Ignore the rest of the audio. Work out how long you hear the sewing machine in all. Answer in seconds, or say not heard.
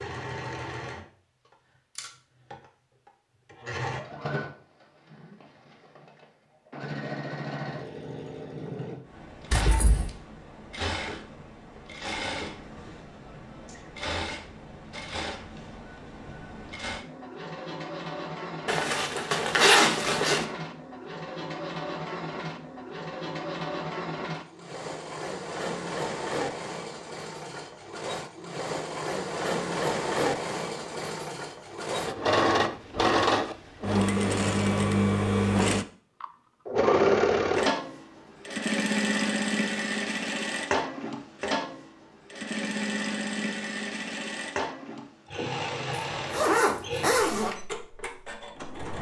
49 s.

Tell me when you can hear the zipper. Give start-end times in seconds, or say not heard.
9.5-10.1, 18.6-20.4, 45.9-47.5.